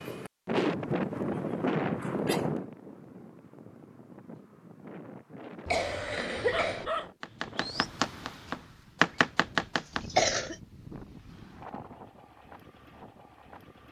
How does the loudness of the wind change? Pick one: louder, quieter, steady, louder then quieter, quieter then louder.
quieter.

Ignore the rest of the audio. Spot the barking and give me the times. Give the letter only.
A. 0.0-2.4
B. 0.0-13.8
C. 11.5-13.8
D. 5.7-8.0
D.